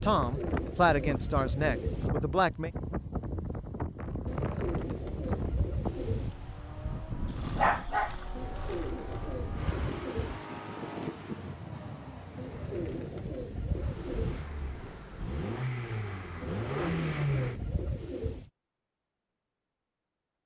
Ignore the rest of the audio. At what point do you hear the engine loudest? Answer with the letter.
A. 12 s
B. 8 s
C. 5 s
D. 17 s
D.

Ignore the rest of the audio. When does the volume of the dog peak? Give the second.
8 s.